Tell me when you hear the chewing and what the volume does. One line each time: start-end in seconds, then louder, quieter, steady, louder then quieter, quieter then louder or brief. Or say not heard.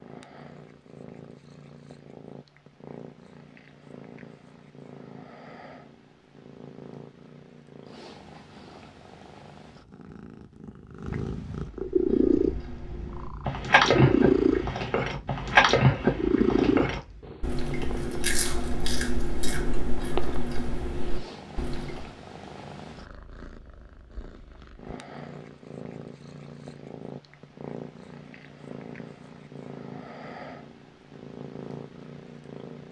11.8-22.1 quieter.